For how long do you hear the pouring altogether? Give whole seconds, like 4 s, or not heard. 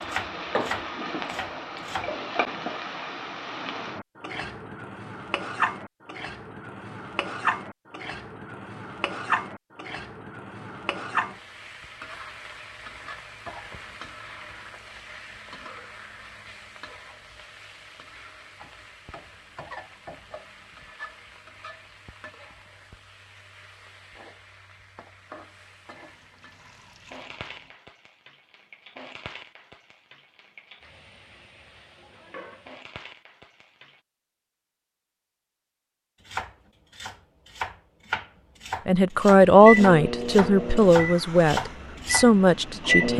2 s.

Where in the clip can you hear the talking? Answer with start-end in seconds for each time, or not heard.
38.9-43.1.